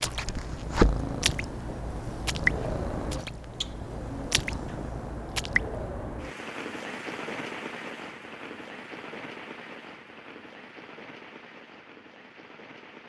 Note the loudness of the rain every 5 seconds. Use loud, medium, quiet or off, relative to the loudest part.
loud, loud, quiet.